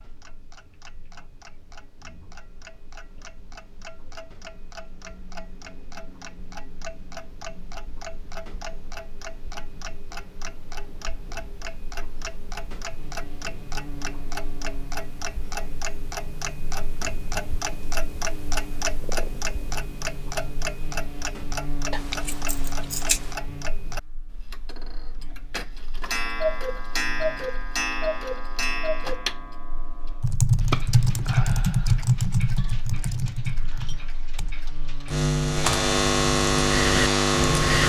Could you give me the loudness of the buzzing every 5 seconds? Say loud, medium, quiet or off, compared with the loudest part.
off, off, quiet, quiet, quiet, quiet, quiet, loud.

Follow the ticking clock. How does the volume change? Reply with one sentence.
The volume of the ticking clock goes up.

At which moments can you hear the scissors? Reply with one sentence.
The scissors can be heard from 21.9 to 23.4 s.